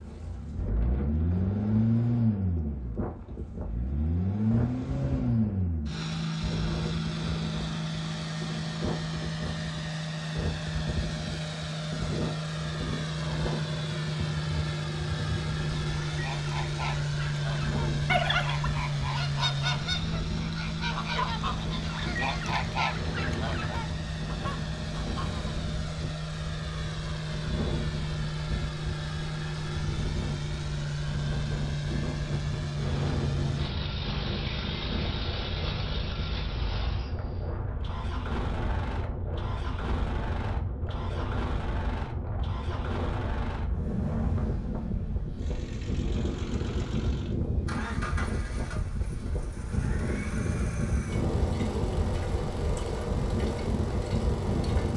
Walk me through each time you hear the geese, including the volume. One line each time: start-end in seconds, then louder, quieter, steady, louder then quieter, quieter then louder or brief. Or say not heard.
15.9-25.6 louder then quieter.